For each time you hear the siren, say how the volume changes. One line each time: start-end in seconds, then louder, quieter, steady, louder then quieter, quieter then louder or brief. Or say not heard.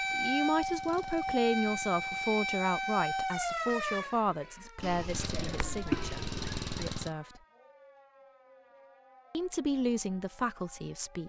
0.0-11.2 quieter.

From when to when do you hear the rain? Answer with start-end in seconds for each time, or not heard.
not heard.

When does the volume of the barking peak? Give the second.
6 s.